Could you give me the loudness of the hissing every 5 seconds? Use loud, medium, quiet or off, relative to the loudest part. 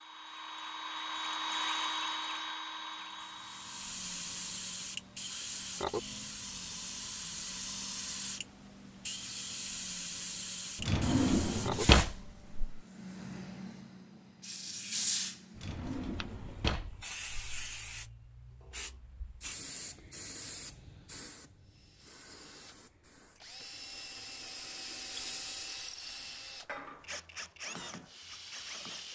loud, loud, loud, loud, medium, medium.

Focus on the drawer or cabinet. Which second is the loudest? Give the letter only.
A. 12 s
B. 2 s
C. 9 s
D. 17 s
A.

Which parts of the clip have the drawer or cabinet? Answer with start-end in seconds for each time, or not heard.
10.8-12.8, 15.6-18.1.